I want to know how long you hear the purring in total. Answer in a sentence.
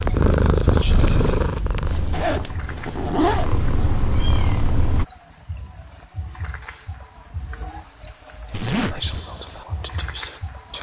The purring can be heard for 5 seconds in total.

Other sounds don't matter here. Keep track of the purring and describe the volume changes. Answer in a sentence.
The loudness of the purring goes down, then up.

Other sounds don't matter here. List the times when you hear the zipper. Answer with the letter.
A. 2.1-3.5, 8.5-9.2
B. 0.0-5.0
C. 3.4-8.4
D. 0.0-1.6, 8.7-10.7
A.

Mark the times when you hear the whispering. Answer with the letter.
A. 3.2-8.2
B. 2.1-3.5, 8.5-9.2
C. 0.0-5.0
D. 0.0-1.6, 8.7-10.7
D.